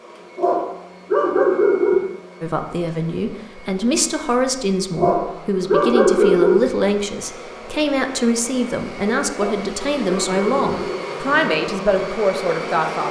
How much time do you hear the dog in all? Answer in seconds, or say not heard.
5 s.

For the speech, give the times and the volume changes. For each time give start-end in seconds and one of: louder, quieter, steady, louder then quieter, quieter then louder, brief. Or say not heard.
2.4-13.0 steady.